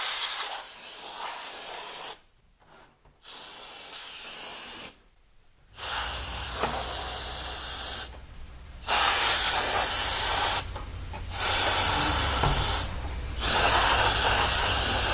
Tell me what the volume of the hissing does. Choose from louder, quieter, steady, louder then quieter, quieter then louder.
louder.